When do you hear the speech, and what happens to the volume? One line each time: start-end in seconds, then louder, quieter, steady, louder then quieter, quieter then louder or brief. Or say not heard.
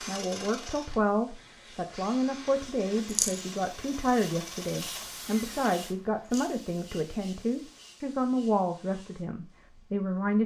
0.1-10.4 steady.